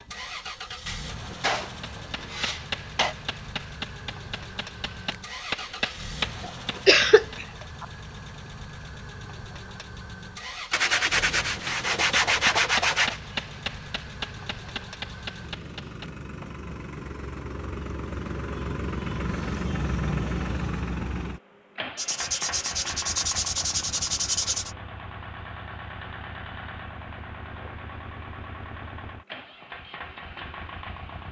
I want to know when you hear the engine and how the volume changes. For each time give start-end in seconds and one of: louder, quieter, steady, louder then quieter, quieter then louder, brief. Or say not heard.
0.0-31.2 louder then quieter.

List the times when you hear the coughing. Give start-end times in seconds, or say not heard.
6.5-7.8.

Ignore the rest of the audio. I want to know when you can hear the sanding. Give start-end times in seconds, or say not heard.
0.8-3.1, 10.7-13.2, 21.9-24.8.